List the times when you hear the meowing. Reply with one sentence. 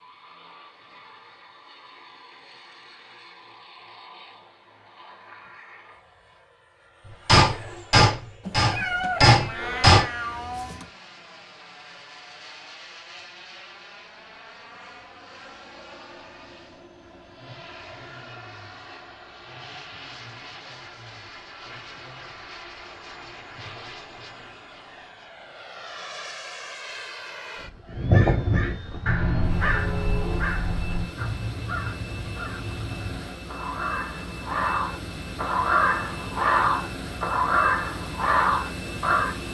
You can hear the meowing from 8.4 to 10.9 s.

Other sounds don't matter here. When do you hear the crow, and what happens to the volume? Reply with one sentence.
You can hear the crow from 27.9 to 39.4 s, getting quieter then louder.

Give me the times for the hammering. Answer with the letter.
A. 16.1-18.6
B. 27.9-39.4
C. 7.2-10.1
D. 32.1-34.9
C.